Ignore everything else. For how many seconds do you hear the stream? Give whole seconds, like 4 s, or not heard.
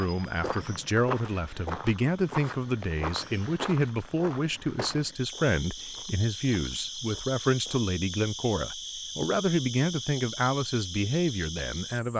not heard.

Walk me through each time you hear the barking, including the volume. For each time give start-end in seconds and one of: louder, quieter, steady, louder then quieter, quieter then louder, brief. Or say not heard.
not heard.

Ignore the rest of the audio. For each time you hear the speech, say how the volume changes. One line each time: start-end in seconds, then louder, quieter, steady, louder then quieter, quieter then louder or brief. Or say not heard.
0.0-12.1 steady.